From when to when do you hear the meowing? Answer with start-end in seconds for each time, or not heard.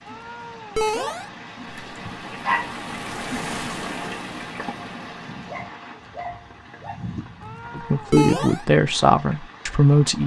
0.1-1.3, 7.4-8.7.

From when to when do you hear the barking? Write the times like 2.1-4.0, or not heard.
1.6-2.8, 5.2-7.2.